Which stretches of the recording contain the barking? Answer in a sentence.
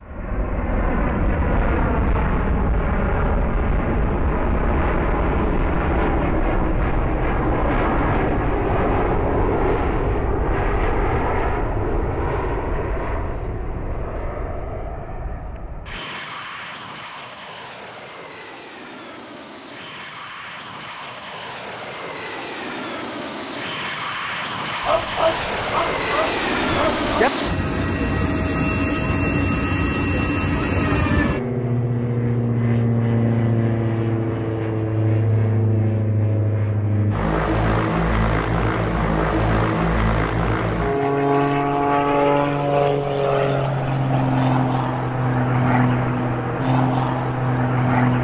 The barking can be heard from 24.8 to 27.3 s.